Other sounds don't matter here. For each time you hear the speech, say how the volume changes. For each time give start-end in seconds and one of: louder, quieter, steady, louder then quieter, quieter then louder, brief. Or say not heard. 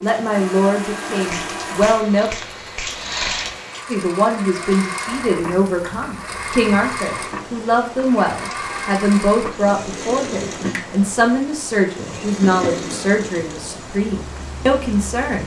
0.0-2.3 brief
3.9-15.4 steady.